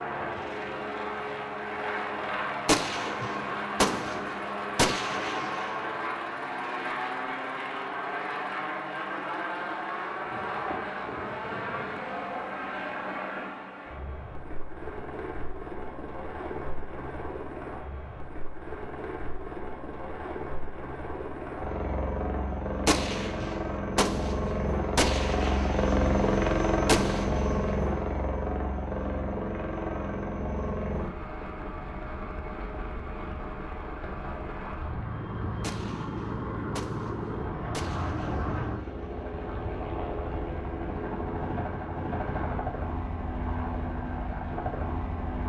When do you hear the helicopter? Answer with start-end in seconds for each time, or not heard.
0.0-45.4.